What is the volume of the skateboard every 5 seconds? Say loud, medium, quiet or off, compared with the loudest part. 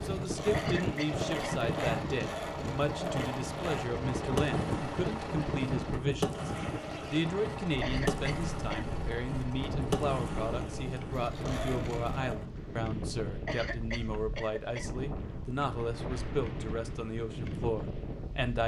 loud, loud, loud, off.